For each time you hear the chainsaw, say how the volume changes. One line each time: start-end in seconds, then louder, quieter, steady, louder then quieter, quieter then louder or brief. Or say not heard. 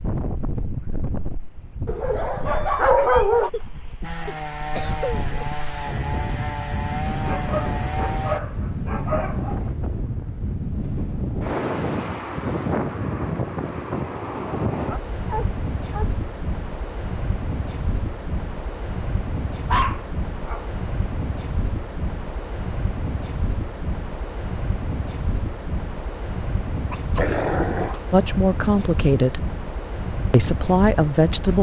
4.0-8.4 steady.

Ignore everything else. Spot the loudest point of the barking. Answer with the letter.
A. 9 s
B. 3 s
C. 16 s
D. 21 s
B.